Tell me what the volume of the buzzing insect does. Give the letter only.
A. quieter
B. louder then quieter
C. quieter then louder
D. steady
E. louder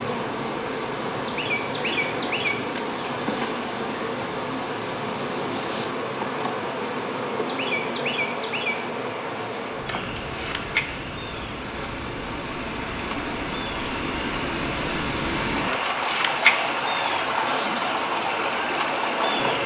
C.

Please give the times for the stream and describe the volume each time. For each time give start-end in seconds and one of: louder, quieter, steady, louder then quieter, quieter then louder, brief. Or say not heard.
0.0-19.6 louder.